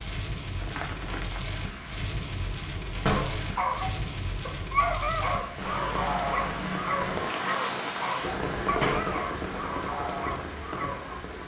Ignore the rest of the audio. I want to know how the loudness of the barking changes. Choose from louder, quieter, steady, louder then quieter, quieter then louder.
quieter.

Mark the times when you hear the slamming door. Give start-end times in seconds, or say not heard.
3.0-3.5, 8.6-9.2.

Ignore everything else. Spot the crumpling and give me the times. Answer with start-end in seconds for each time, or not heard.
0.6-1.4.